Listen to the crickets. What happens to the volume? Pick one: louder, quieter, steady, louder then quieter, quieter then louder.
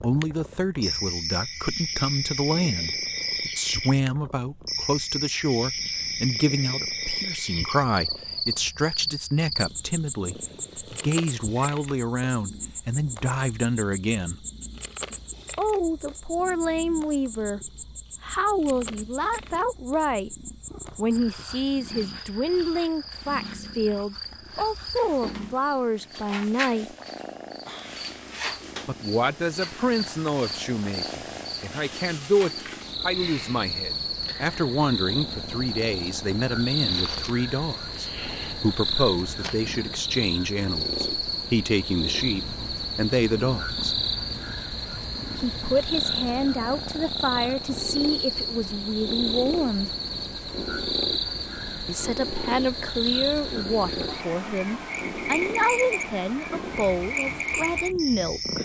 quieter then louder.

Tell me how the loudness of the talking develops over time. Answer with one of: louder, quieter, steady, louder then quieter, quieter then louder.
steady.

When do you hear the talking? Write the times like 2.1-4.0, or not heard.
0.0-14.4, 15.6-20.4, 20.9-26.9, 28.9-43.8, 45.4-49.9, 51.9-58.5.